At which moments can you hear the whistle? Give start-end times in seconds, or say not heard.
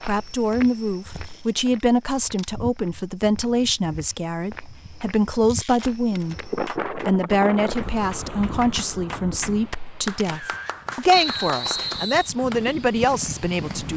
11.1-12.3.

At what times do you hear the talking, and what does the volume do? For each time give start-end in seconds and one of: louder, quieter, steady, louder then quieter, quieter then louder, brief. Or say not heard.
0.1-13.9 steady.